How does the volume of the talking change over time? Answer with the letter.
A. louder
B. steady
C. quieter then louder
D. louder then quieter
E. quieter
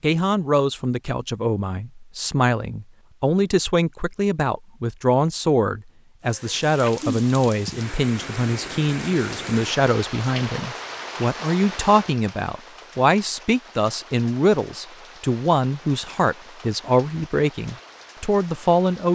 B.